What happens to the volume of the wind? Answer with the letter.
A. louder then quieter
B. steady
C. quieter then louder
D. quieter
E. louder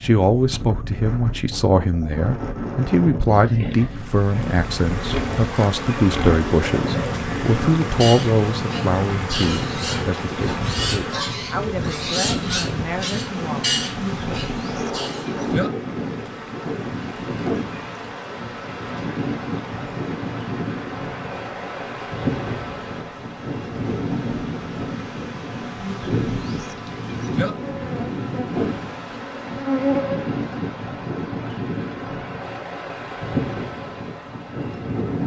B.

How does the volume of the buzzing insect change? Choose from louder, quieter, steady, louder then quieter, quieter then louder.
quieter then louder.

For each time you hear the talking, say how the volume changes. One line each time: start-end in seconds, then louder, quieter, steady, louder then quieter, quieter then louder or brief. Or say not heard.
0.0-13.8 quieter.